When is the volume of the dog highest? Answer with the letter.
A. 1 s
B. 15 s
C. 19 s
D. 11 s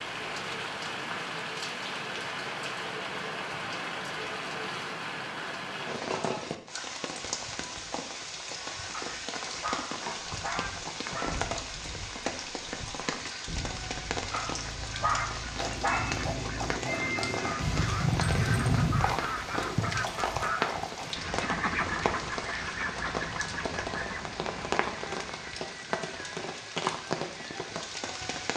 B.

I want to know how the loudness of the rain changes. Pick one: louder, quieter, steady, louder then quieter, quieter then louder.
steady.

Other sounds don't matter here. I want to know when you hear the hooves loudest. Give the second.
19 s.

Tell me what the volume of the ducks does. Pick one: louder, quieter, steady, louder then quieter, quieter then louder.
louder then quieter.